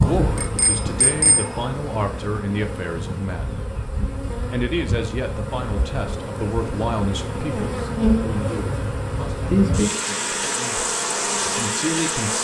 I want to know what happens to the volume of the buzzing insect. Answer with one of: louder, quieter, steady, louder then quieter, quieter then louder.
louder.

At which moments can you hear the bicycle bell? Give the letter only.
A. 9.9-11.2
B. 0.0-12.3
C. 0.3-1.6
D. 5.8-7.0
C.